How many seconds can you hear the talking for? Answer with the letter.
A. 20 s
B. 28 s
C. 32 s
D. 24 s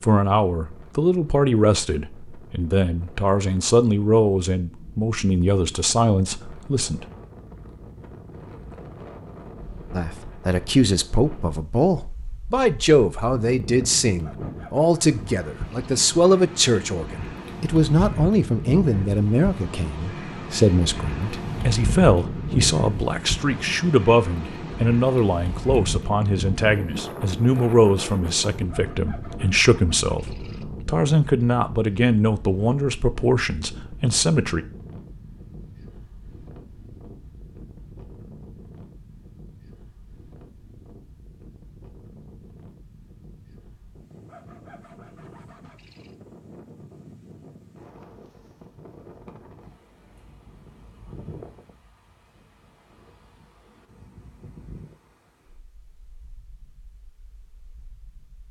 C.